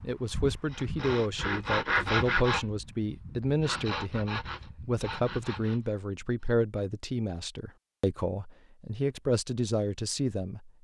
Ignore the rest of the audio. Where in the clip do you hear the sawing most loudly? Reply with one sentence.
The loudest moment of the sawing is at 2 seconds.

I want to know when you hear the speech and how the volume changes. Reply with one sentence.
You can hear the speech from 0.0 to 10.7 s, at a steady volume.